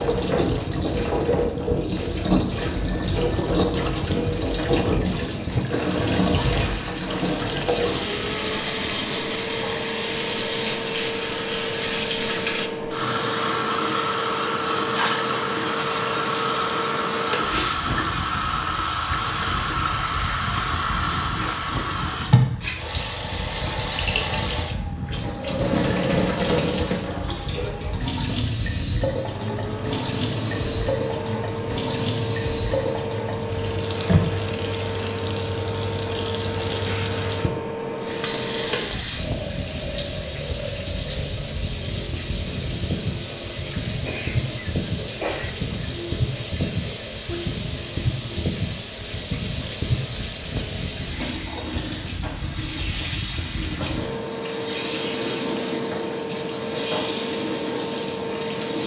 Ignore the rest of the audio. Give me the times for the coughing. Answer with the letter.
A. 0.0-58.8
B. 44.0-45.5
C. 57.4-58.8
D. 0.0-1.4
B.